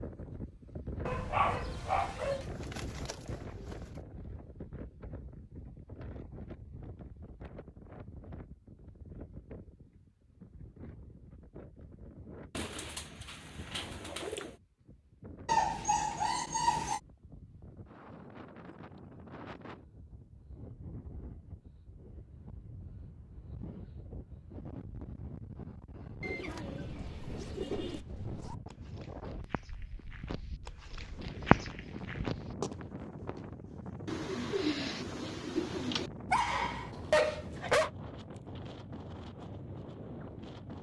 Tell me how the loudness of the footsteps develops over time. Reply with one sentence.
The volume of the footsteps goes up, then down.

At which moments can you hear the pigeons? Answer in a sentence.
You can hear the pigeons from 2.2 to 4.0 s, from 12.5 to 14.6 s, from 26.2 to 28.1 s and from 34.0 to 36.1 s.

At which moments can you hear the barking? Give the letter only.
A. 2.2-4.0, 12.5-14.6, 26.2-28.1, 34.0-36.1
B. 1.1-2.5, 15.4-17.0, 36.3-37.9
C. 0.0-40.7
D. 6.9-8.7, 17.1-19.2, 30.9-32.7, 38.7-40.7
B.